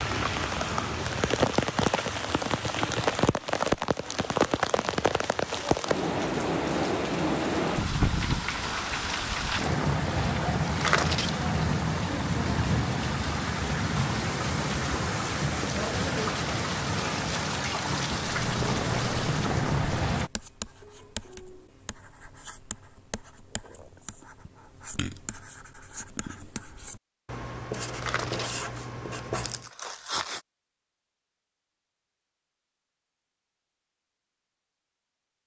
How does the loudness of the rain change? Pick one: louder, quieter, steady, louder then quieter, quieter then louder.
steady.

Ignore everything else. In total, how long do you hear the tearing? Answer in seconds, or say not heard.
3 s.